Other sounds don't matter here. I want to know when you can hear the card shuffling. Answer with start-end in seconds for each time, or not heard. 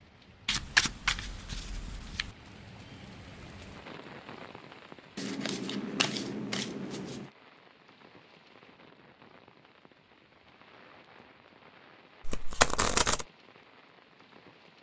0.5-2.3, 5.2-7.3, 12.2-13.2.